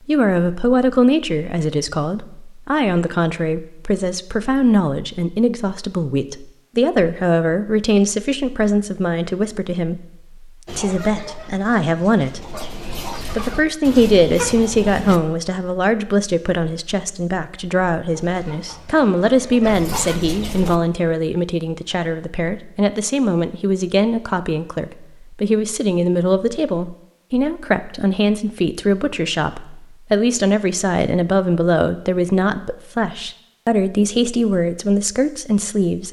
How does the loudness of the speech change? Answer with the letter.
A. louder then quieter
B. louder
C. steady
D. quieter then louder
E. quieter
C.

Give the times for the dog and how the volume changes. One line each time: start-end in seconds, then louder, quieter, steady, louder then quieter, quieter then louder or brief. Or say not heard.
not heard.